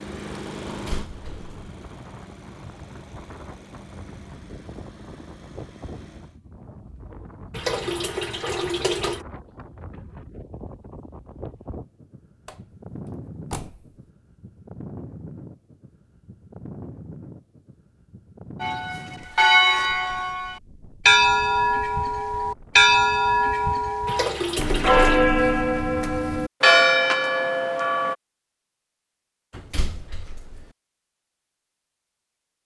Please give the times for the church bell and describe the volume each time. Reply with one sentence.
You can hear the church bell from 18.6 to 28.1 s, at a steady volume.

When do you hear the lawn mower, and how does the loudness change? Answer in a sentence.
The lawn mower can be heard from 0.0 to 6.4 s, getting quieter.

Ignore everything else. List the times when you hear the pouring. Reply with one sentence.
You can hear the pouring from 7.5 to 9.2 s and from 24.1 to 25.2 s.